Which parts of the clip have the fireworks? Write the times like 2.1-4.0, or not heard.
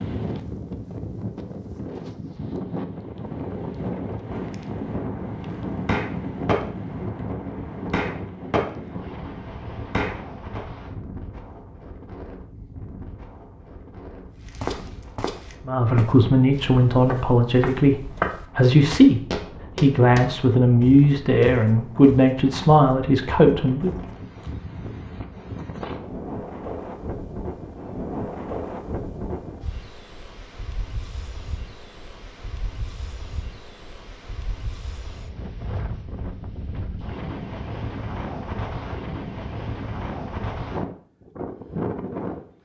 4.2-10.6.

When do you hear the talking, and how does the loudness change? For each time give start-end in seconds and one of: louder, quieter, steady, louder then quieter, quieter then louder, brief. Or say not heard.
15.7-23.9 steady.